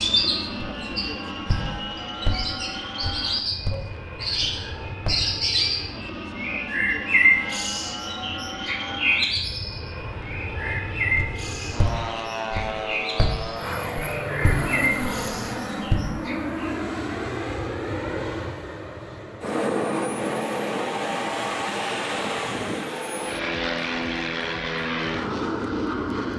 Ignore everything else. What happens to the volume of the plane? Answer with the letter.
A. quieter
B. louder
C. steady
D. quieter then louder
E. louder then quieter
B.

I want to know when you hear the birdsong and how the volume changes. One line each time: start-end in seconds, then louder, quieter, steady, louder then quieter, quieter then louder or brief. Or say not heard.
0.0-16.6 louder then quieter.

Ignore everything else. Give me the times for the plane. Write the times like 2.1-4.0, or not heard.
0.0-26.3.